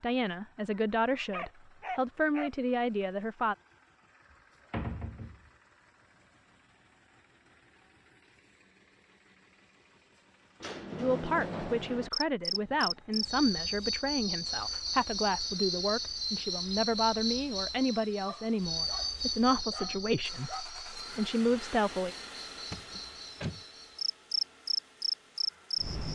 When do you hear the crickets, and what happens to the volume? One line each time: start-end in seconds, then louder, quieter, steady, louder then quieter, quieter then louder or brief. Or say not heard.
12.1-26.1 quieter then louder.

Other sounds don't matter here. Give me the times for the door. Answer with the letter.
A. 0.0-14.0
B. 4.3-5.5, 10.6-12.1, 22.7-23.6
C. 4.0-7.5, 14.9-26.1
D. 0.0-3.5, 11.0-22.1
B.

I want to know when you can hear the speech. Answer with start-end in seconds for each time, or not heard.
0.0-3.5, 11.0-22.1.